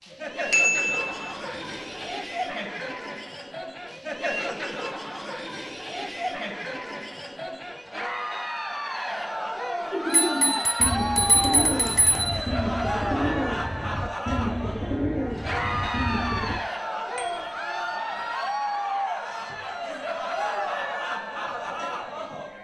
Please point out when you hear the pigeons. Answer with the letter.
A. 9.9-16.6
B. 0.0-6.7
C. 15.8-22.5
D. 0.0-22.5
A.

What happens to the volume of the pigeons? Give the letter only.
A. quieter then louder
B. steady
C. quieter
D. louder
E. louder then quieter
B.